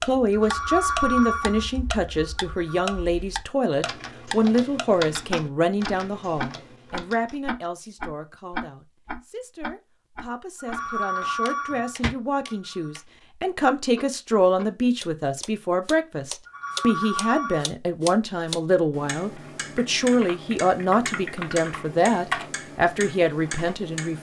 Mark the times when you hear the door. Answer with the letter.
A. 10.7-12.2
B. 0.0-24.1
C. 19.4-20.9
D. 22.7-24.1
A.